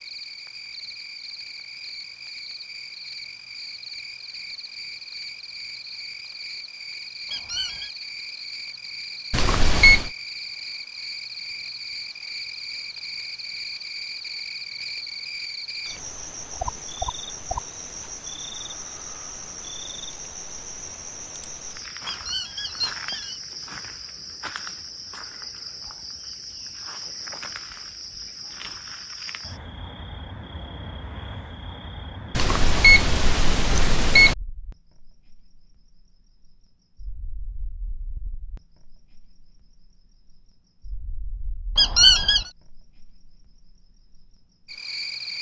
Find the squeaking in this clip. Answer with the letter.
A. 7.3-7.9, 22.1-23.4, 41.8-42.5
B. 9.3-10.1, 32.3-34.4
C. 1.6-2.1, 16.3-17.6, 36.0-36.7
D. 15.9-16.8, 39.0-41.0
A.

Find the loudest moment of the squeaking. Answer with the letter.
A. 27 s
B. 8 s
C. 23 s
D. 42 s
D.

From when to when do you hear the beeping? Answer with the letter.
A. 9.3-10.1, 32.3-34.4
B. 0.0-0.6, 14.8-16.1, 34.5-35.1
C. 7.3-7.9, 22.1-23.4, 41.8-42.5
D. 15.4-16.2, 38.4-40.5
A.